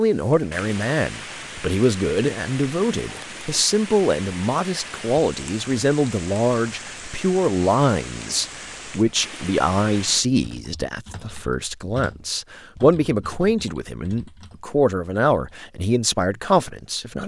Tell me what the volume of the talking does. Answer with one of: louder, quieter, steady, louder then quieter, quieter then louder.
steady.